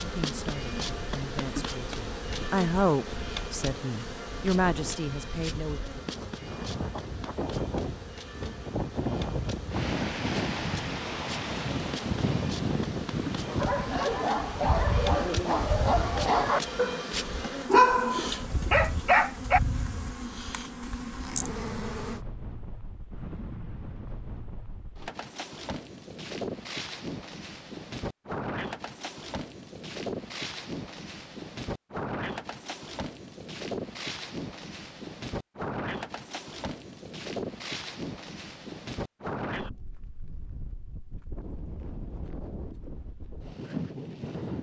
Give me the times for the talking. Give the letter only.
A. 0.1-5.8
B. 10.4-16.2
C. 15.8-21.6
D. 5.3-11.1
A.